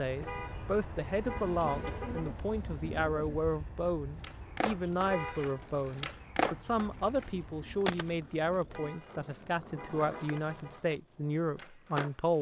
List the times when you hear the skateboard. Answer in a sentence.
The skateboard can be heard from 4.2 to 12.3 s.